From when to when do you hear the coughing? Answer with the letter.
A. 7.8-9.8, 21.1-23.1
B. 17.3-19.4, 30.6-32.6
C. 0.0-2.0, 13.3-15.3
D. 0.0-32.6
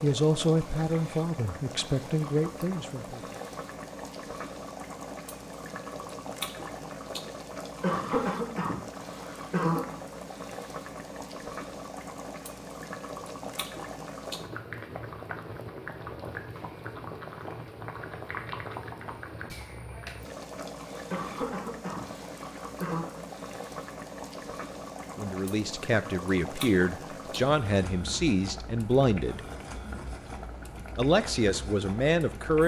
A.